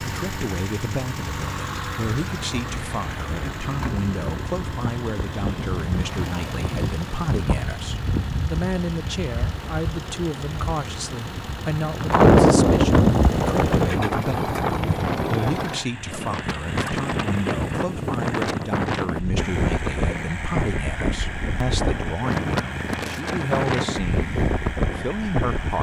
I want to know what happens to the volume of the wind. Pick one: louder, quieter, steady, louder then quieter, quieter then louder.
louder then quieter.